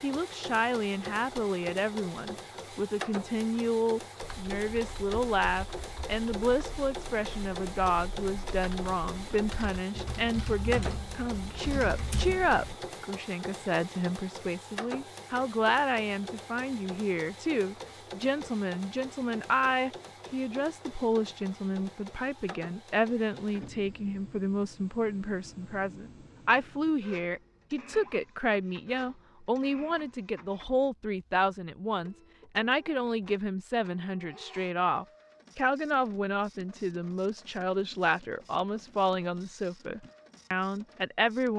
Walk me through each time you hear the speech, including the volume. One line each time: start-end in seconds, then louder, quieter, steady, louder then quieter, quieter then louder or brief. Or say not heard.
0.0-41.5 steady.